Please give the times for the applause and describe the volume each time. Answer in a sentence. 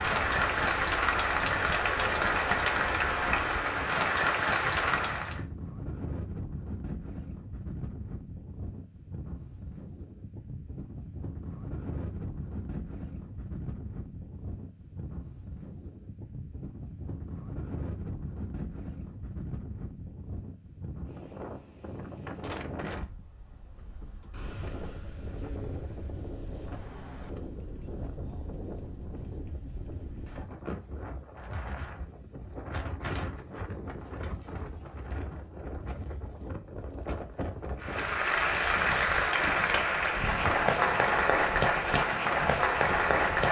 The applause can be heard from 0.0 to 5.4 s, at a steady volume; and from 37.8 to 43.4 s, at a steady volume.